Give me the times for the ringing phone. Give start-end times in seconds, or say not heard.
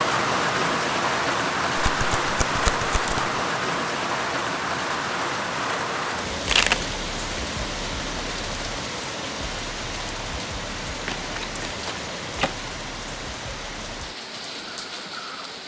not heard.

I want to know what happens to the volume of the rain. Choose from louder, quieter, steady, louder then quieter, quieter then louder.
quieter.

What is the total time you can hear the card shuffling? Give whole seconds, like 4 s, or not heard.
4 s.